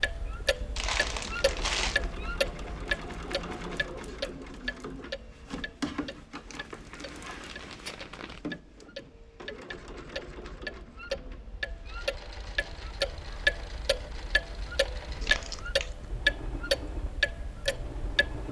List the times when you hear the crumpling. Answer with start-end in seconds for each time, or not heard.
0.8-2.0, 6.5-8.4, 15.2-15.9.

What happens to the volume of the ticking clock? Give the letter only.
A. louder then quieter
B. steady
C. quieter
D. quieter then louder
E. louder
D.